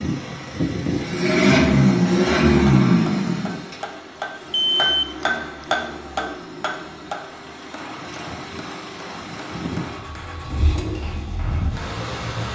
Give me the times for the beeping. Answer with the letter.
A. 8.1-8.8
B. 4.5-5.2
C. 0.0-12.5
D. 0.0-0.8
B.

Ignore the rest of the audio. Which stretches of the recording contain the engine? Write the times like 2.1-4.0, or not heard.
0.0-12.5.